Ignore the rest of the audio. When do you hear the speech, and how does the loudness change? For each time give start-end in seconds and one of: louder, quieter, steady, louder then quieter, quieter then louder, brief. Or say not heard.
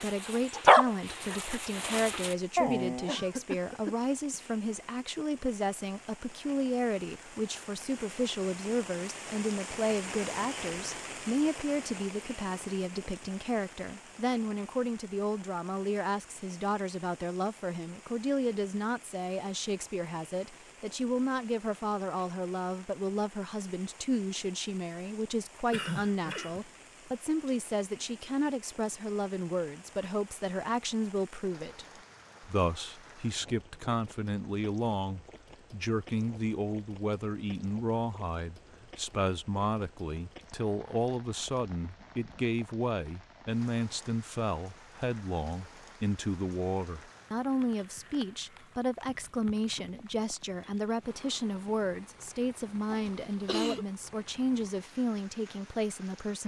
0.0-56.4 steady.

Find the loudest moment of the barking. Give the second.
1 s.